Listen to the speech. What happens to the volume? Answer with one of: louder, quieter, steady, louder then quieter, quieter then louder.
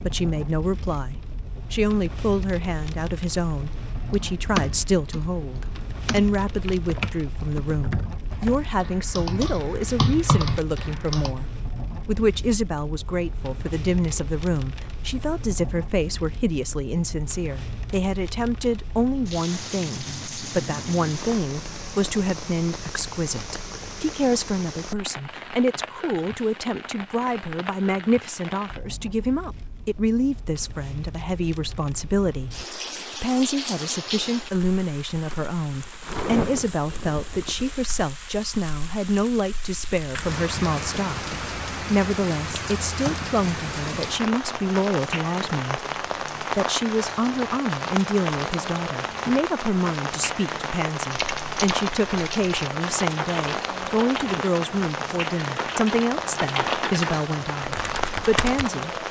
steady.